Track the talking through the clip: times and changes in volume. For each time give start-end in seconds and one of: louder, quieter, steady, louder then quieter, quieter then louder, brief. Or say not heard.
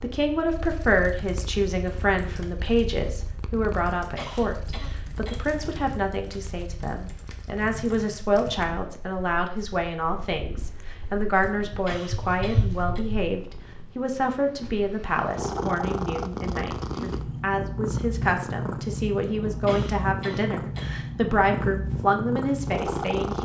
0.0-23.4 steady.